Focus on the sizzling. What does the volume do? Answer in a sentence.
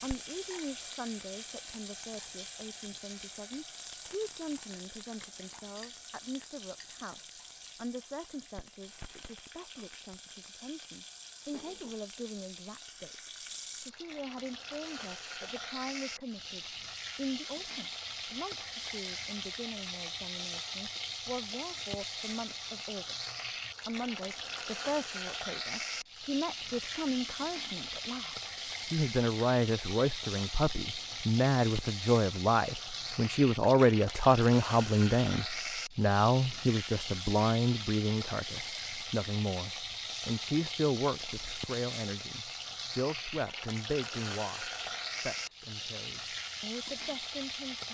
The volume of the sizzling goes up.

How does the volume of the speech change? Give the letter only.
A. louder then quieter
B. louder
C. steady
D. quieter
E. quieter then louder
A.